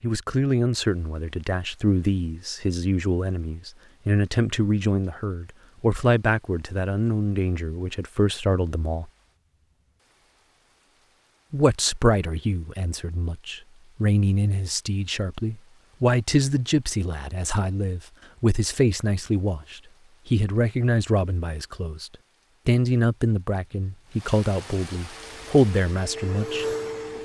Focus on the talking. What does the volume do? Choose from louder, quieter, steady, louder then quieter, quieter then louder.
steady.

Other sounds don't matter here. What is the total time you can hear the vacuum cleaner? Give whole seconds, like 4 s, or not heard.
2 s.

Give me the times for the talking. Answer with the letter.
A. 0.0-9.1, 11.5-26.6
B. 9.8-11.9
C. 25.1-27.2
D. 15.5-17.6
A.